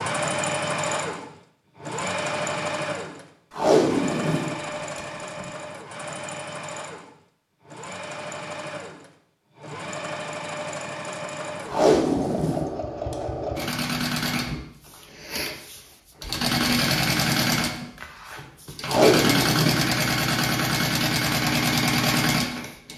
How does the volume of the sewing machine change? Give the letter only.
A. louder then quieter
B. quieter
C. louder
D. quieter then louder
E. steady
D.